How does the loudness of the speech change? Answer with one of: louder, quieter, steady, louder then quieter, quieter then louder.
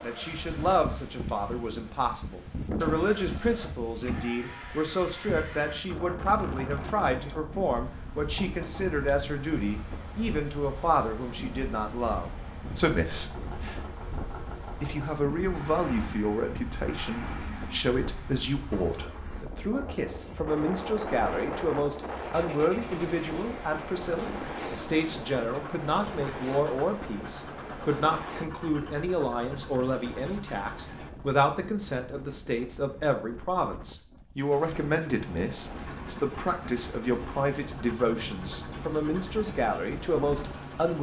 steady.